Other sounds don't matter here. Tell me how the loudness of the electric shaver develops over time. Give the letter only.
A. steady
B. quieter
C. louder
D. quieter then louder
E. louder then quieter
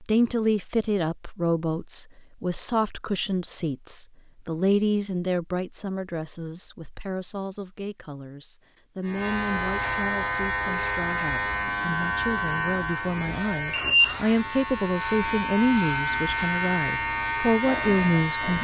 A.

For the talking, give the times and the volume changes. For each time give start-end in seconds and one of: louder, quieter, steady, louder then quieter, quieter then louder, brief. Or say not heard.
0.0-18.5 quieter then louder.